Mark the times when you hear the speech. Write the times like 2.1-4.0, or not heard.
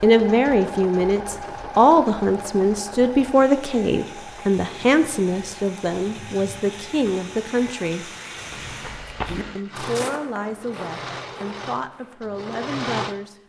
0.0-8.1, 9.6-13.4.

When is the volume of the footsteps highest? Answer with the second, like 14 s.
9 s.